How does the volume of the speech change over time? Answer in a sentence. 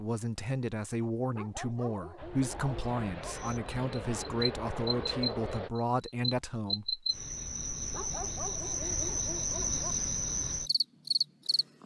The volume of the speech stays about the same.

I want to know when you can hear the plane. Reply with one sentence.
You can hear the plane from 2.1 to 5.7 s.